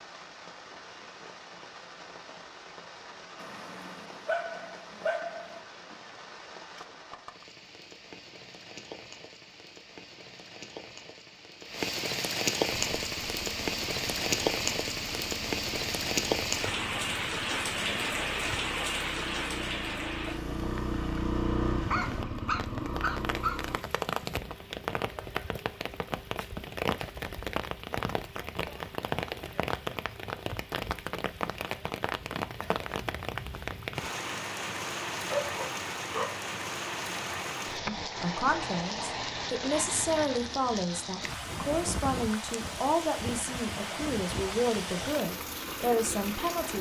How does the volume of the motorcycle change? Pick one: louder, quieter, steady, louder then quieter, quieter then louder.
louder.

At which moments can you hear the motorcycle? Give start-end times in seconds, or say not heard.
12.8-23.8.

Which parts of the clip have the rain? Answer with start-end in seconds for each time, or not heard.
0.0-46.7.